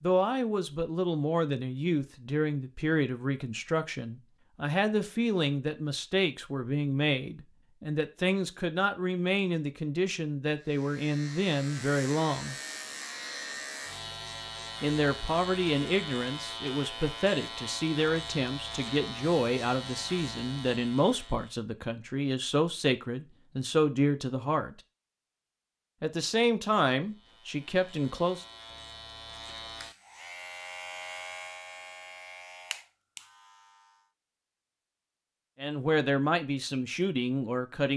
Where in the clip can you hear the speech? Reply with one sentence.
The speech can be heard from 0.0 to 12.6 s, from 14.8 to 24.8 s, from 26.0 to 28.4 s and from 35.6 to 37.9 s.